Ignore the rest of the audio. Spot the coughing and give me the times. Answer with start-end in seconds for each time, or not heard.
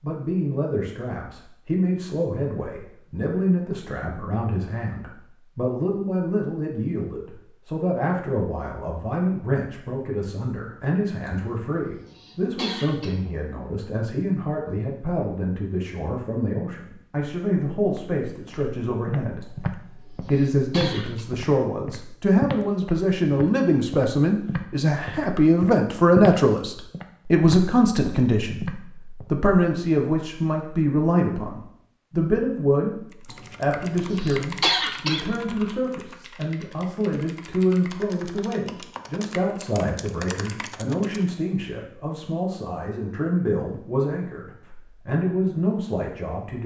11.2-13.2, 19.4-21.2, 33.3-35.2.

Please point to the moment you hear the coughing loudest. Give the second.
35 s.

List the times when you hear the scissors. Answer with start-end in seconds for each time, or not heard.
not heard.